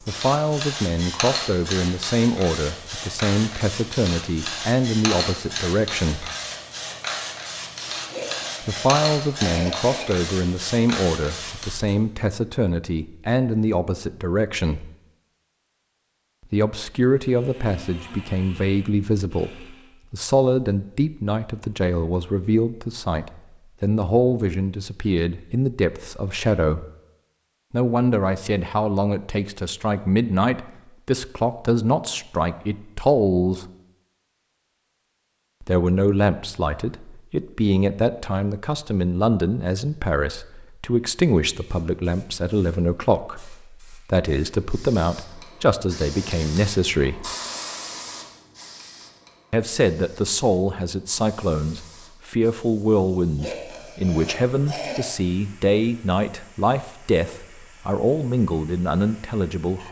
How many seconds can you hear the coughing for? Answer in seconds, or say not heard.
4 s.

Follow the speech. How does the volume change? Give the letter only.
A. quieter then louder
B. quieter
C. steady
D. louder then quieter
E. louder
C.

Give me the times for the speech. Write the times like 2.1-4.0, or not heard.
0.1-6.3, 8.6-14.9, 16.5-26.9, 27.7-33.6, 35.6-47.3, 49.5-59.8.